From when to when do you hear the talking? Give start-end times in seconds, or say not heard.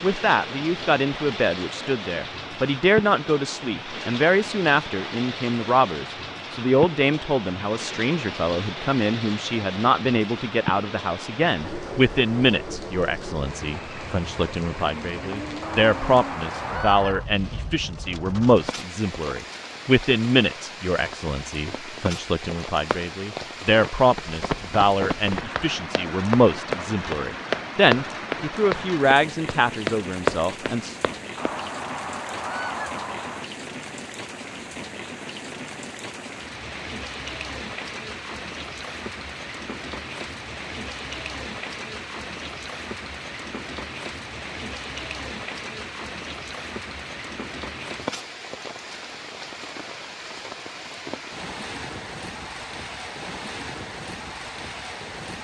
0.0-30.9.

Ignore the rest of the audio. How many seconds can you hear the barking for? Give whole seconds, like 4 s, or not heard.
not heard.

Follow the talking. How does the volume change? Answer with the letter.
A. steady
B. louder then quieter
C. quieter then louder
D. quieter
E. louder
A.